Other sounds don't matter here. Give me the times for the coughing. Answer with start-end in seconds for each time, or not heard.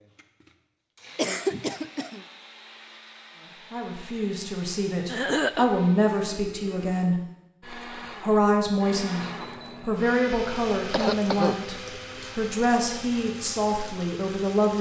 1.1-2.2, 5.0-5.7, 10.9-12.2.